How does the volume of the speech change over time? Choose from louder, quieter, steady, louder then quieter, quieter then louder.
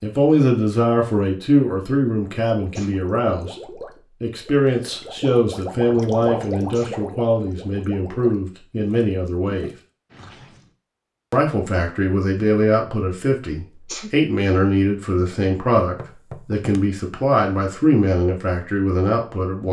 steady.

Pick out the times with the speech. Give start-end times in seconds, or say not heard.
0.0-9.7, 11.3-19.6.